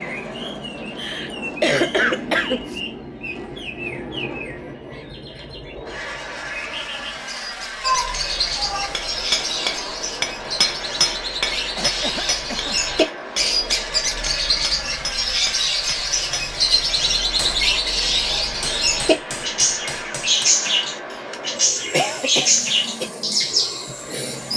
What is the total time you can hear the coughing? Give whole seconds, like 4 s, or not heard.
5 s.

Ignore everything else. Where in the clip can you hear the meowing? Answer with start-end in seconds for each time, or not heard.
7.8-8.9.